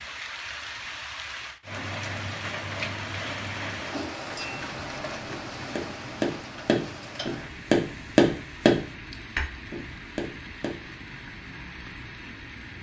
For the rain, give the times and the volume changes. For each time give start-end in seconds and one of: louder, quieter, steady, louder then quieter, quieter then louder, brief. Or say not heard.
0.0-12.7 quieter.